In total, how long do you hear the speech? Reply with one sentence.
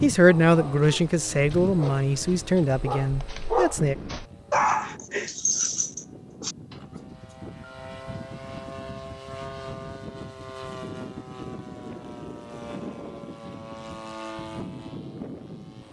You can hear the speech for 4 seconds altogether.